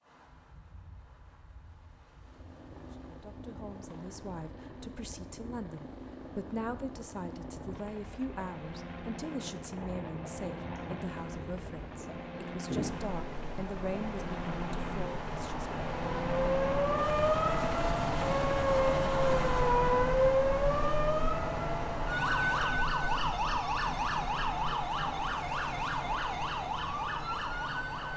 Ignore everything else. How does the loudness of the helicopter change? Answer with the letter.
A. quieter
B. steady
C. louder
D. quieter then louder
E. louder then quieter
C.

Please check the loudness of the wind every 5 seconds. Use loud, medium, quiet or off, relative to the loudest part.
quiet, quiet, medium, loud, loud, medium.